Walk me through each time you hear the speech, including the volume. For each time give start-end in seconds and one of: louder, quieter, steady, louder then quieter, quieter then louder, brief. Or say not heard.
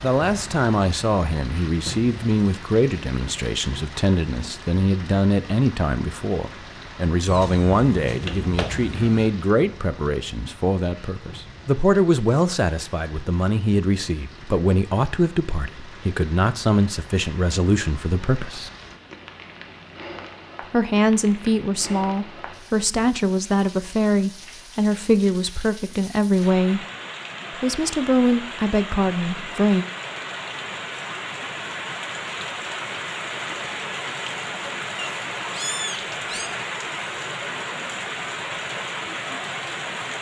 0.0-18.7 steady
20.6-26.9 steady
27.5-29.9 brief.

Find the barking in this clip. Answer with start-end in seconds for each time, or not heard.
not heard.